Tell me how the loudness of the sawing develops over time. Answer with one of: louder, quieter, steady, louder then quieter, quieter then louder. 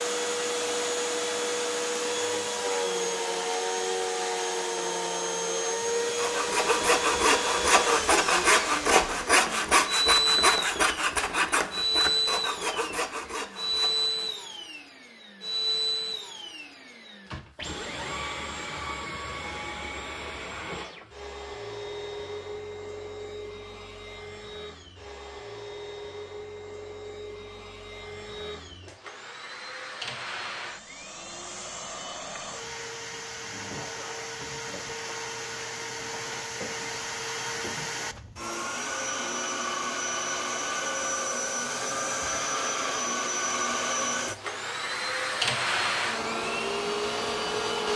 quieter.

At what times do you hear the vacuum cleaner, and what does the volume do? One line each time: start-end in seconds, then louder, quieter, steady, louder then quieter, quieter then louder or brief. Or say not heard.
0.0-47.9 quieter then louder.